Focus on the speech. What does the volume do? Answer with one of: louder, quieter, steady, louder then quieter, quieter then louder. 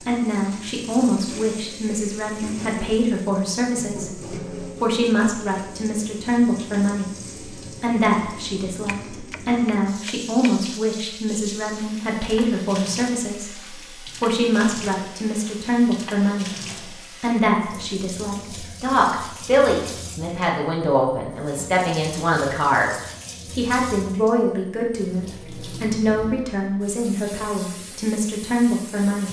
steady.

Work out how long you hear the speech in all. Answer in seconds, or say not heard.
29 s.